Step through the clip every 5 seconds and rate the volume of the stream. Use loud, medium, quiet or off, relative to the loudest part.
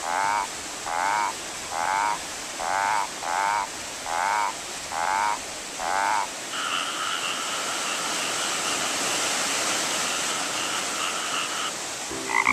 medium, loud, loud.